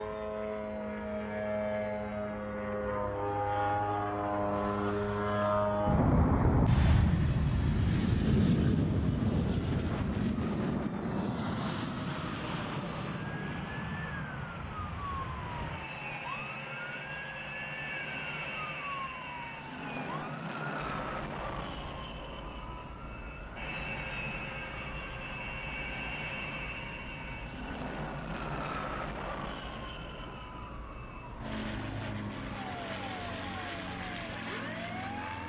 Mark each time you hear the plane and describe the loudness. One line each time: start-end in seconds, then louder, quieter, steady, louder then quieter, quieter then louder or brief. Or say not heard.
0.0-35.4 quieter.